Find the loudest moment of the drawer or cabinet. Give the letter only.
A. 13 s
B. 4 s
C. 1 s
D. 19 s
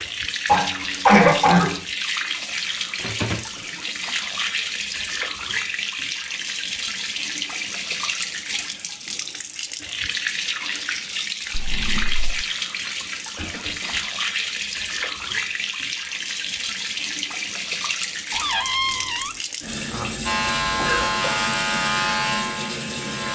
D.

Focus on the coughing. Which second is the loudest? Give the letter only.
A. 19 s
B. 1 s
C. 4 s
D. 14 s
B.